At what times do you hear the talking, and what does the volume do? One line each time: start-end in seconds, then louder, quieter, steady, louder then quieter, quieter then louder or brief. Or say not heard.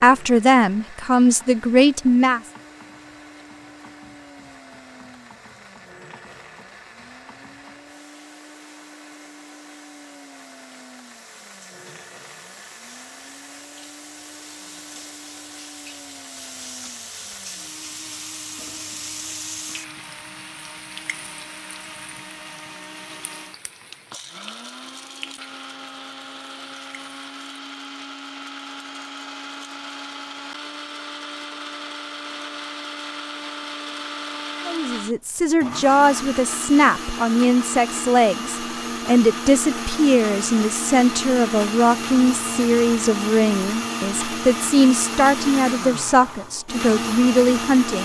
0.0-2.4 brief
34.6-47.9 steady.